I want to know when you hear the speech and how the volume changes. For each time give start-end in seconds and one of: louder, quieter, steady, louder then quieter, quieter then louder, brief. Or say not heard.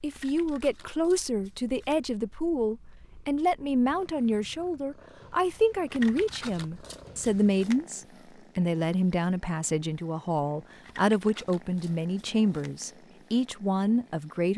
0.0-14.5 steady.